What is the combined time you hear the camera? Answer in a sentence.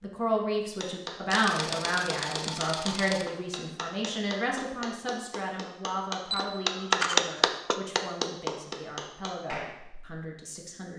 You can hear the camera for 3 seconds altogether.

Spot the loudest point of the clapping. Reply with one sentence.
The loudest moment of the clapping is at 7 seconds.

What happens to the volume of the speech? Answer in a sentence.
The volume of the speech goes down.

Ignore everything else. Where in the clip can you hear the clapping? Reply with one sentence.
The clapping can be heard from 0.8 to 10.2 s.